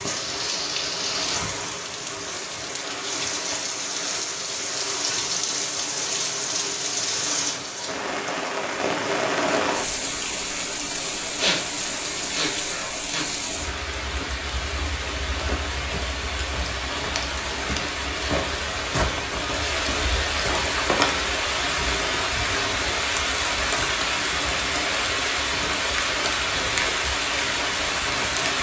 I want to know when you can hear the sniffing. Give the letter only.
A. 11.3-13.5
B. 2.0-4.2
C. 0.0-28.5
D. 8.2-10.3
A.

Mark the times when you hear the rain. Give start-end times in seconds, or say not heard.
0.0-28.5.